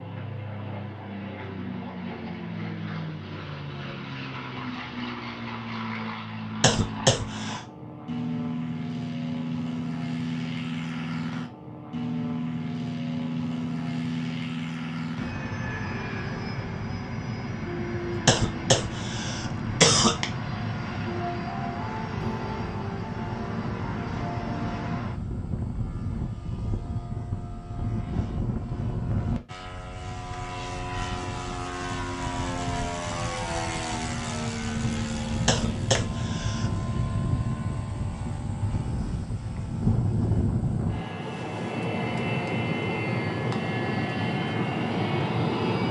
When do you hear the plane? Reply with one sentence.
The plane can be heard from 0.0 to 45.8 s.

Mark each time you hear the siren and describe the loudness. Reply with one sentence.
You can't hear the siren here.